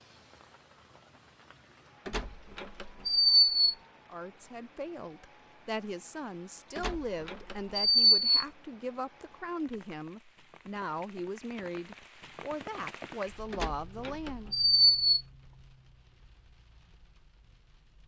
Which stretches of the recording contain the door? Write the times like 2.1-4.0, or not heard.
2.0-3.8, 6.8-8.3, 13.5-15.2.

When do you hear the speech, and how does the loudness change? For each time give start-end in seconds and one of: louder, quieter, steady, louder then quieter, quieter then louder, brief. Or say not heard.
4.0-14.6 steady.